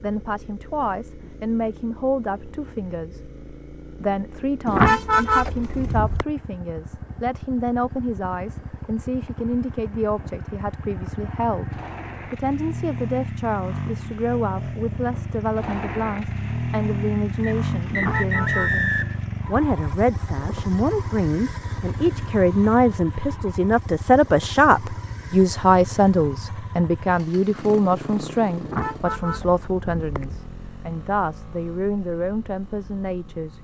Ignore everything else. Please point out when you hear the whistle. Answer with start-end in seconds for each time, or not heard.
17.4-19.2.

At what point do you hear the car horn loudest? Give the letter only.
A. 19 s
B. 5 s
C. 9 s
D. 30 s
B.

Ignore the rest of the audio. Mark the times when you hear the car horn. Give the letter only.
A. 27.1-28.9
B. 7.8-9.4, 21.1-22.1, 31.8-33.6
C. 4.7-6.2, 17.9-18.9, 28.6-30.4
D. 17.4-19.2
C.